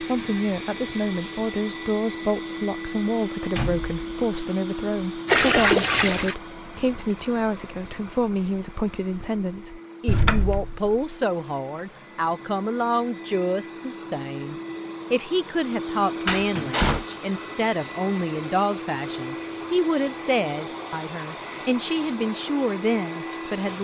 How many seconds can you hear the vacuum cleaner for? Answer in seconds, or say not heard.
24 s.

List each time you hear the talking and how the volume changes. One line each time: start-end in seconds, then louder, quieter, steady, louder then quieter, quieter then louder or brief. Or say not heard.
0.0-23.8 steady.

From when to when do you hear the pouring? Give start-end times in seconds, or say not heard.
5.2-6.3.